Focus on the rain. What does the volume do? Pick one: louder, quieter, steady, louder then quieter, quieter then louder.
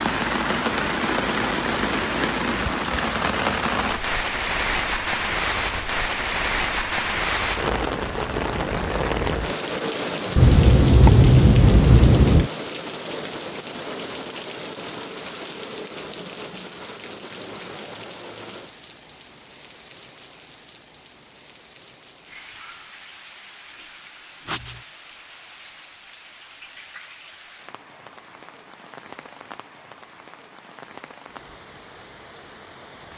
quieter.